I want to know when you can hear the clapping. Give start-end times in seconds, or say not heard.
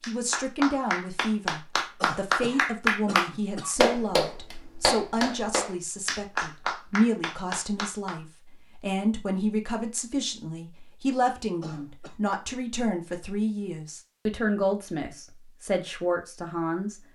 0.0-8.2.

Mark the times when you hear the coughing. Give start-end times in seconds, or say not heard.
2.0-3.8, 11.6-12.2.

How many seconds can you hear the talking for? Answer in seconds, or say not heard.
17 s.